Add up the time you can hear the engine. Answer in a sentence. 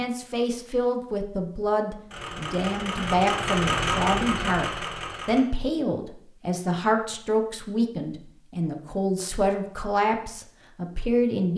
You can hear the engine for 3 seconds altogether.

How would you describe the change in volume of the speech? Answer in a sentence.
The loudness of the speech stays about the same.